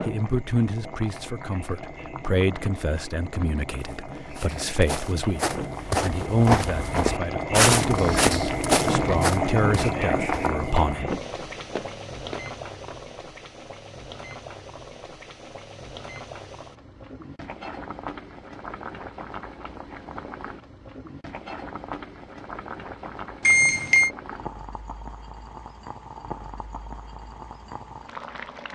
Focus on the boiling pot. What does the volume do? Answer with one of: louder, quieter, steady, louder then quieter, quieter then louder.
louder then quieter.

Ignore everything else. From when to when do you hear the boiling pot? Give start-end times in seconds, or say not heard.
0.0-28.7.